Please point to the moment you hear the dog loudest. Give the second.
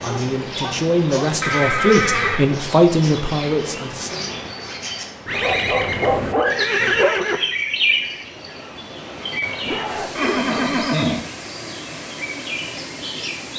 6 s.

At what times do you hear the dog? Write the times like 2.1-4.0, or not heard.
0.1-1.4, 5.3-7.2, 9.6-10.8.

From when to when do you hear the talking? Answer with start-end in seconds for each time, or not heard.
0.0-4.3.